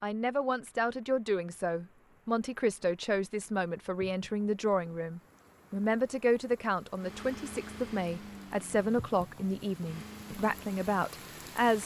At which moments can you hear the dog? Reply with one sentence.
You can't hear the dog here.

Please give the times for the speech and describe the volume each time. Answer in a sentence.
The speech can be heard from 0.0 to 11.8 s, at a steady volume.